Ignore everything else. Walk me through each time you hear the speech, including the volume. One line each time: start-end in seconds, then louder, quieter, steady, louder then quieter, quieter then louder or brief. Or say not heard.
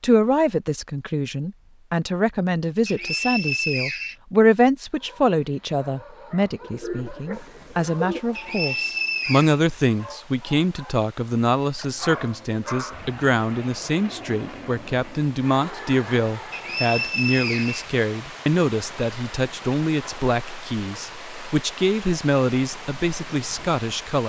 0.0-24.2 steady.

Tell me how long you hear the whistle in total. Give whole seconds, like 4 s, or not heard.
4 s.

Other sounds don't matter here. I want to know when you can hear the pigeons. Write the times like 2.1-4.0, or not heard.
6.6-8.2.